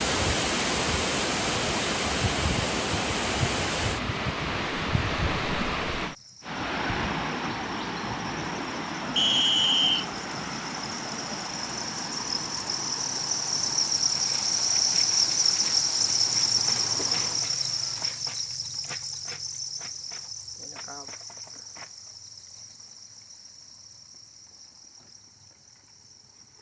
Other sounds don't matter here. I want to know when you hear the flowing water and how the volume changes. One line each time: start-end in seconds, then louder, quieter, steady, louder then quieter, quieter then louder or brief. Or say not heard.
0.0-18.3 quieter.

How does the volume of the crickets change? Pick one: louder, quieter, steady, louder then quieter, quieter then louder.
louder then quieter.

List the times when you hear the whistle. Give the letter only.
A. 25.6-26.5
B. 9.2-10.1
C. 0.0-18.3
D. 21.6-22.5
B.